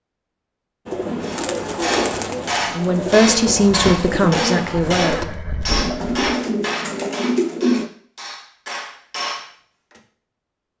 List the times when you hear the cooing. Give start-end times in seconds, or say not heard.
0.8-7.9.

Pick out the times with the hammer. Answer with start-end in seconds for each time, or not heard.
1.2-10.0.